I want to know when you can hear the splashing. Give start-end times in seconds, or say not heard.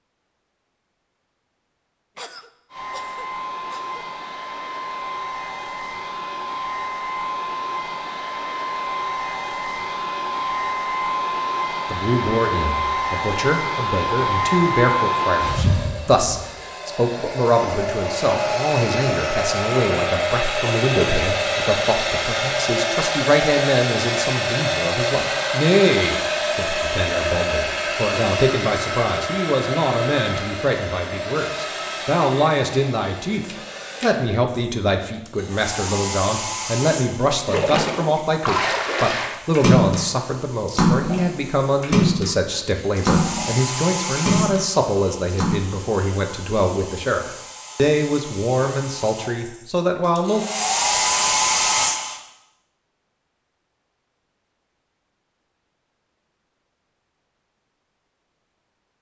37.2-45.6.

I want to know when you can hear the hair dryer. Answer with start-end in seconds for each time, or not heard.
2.7-52.2.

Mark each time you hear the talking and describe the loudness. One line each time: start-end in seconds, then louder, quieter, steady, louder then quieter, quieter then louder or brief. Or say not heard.
11.9-50.5 steady.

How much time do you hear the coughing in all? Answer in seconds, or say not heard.
2 s.